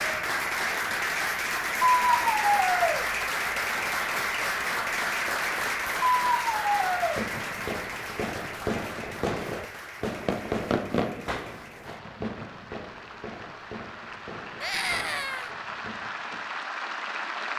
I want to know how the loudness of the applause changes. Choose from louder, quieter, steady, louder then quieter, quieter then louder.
quieter then louder.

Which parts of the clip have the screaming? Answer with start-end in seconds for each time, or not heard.
1.9-3.0, 6.2-7.2, 14.6-15.5.